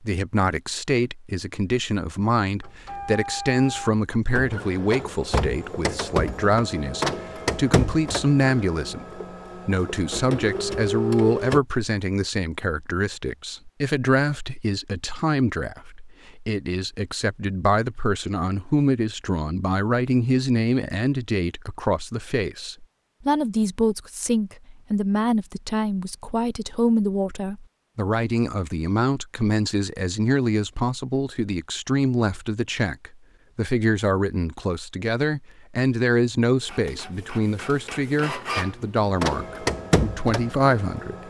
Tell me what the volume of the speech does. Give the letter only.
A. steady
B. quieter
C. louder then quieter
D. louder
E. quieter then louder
A.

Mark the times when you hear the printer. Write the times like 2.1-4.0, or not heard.
2.6-11.6, 36.6-41.2.